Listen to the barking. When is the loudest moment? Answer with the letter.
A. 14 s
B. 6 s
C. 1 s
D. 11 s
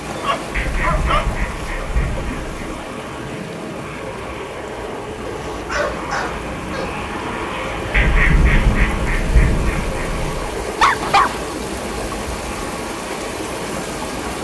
D.